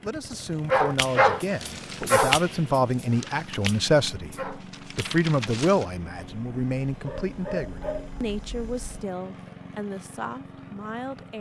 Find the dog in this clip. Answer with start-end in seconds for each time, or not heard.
0.7-8.9.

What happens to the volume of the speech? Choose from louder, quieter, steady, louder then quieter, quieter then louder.
louder then quieter.